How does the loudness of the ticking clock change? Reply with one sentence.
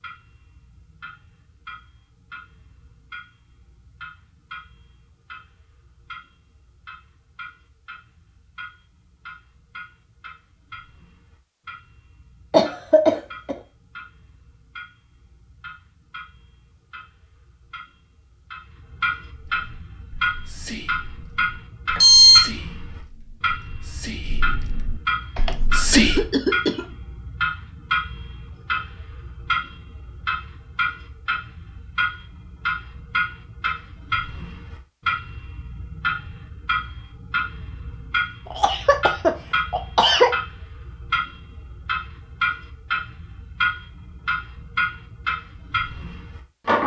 The volume of the ticking clock goes up.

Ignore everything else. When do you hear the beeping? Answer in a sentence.
The beeping can be heard from 21.9 to 22.4 s.